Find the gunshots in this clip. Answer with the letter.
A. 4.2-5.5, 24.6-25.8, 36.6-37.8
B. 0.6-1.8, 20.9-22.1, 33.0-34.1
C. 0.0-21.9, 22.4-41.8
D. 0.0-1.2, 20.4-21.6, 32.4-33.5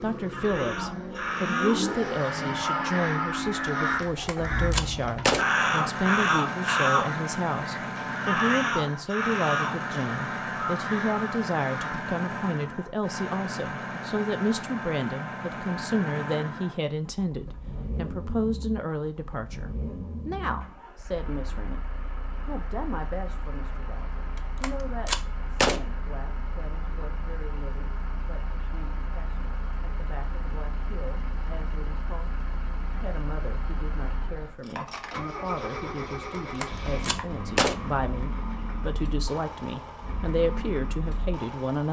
A.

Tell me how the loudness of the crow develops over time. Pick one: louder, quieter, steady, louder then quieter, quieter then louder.
louder then quieter.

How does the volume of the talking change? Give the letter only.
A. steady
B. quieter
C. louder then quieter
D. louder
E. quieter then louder
E.